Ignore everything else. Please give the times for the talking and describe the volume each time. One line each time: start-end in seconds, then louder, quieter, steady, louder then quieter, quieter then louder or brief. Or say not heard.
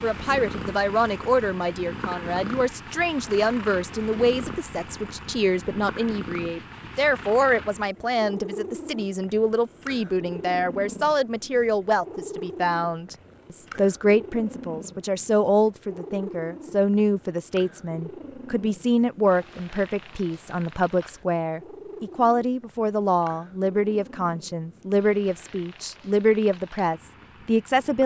0.0-28.0 steady.